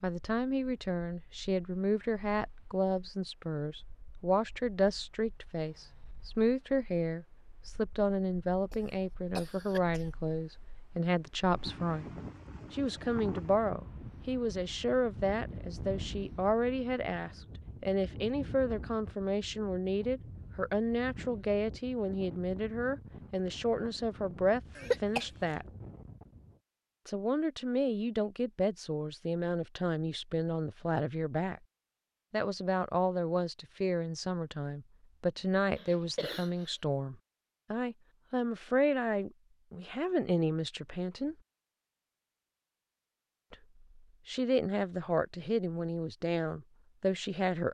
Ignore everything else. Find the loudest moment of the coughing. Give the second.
25 s.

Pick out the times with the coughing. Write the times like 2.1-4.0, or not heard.
8.7-10.1, 24.8-25.3, 35.8-36.6.